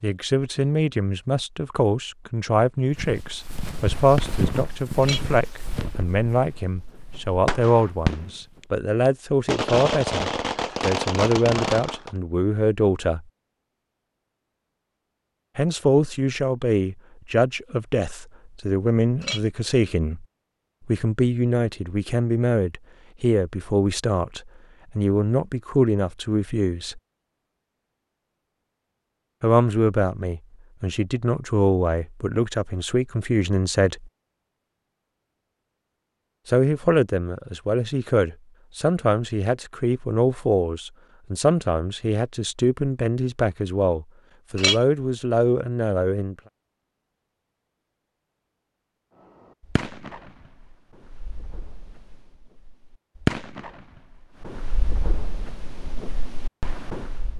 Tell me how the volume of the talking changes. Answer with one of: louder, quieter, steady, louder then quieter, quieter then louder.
steady.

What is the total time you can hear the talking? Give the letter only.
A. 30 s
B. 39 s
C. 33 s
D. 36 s
B.